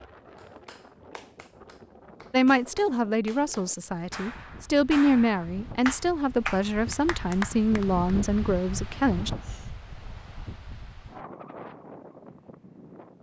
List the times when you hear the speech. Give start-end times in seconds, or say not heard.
2.3-9.3.